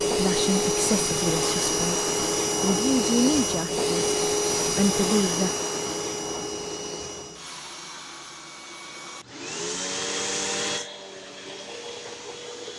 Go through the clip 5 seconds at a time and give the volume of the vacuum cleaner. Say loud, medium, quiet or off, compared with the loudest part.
loud, medium, medium.